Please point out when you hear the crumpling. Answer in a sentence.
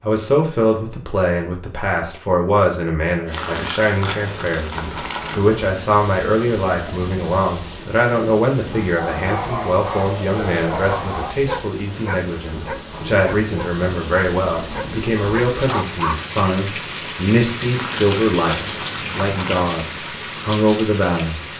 The crumpling can be heard from 3.4 to 5.4 s and from 17.8 to 19.6 s.